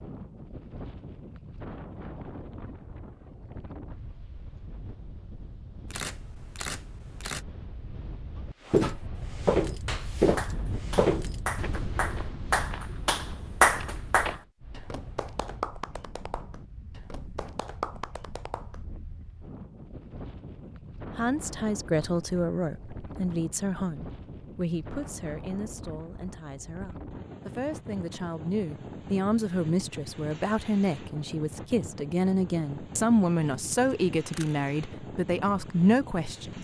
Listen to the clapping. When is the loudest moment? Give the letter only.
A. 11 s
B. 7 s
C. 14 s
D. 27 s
C.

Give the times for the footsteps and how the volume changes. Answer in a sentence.
The footsteps can be heard from 8.6 to 14.4 s, getting quieter.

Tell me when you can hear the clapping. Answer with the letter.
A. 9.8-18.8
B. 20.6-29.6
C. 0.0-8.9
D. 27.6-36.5
A.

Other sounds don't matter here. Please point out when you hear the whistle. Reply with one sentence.
The whistle can't be heard in this clip.